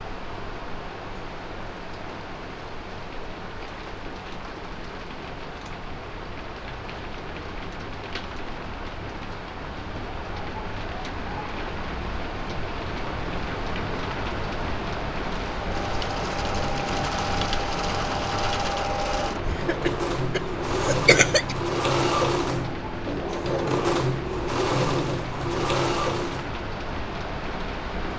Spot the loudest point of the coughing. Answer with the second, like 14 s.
21 s.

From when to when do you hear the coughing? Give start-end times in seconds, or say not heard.
19.5-21.6.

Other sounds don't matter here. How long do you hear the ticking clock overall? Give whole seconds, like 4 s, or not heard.
not heard.